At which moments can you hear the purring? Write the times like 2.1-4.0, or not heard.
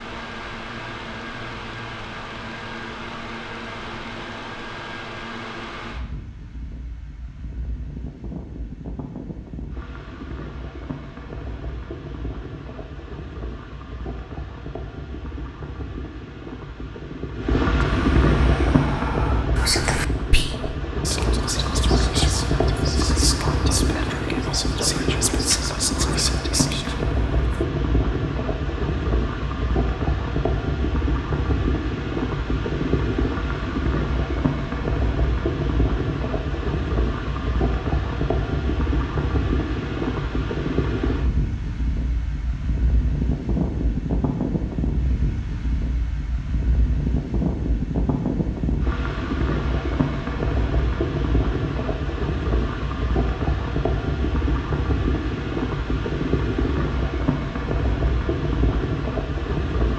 not heard.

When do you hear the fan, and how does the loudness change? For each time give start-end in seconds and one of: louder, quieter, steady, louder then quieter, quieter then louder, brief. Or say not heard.
0.0-59.9 louder.